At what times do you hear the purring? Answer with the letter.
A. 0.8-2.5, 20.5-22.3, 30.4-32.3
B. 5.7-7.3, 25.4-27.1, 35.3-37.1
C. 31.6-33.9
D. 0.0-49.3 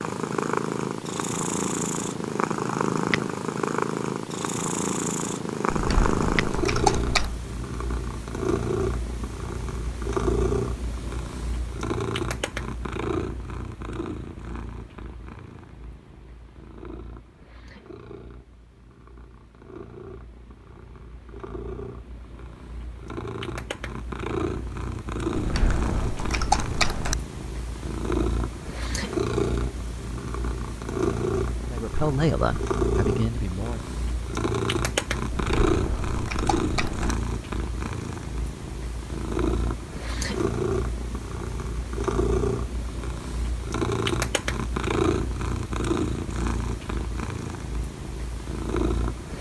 D.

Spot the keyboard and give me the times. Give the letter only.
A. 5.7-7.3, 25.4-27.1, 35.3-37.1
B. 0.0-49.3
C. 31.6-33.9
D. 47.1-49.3
A.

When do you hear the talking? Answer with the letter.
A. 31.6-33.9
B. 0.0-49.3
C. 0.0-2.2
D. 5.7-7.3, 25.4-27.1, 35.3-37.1
A.